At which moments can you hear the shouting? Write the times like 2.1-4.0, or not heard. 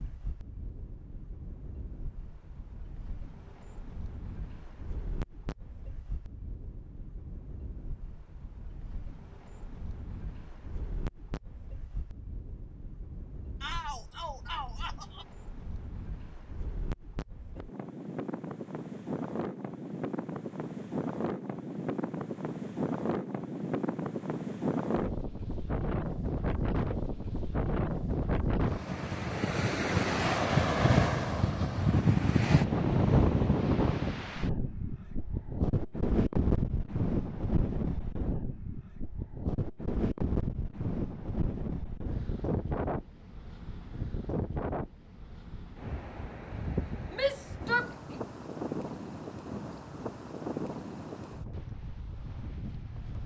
13.6-15.2, 47.1-48.1.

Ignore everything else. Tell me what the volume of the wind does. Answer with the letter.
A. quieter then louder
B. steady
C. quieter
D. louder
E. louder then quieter
E.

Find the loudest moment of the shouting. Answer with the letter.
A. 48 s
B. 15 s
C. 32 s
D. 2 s
A.